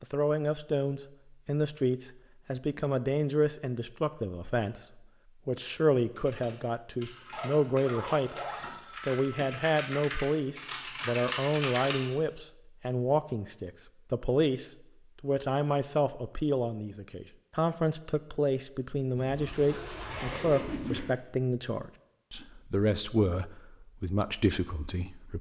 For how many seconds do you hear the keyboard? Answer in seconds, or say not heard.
6 s.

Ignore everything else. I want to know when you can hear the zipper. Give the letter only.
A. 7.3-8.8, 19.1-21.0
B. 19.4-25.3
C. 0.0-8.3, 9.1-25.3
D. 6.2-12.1
A.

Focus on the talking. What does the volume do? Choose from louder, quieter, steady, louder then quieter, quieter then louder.
steady.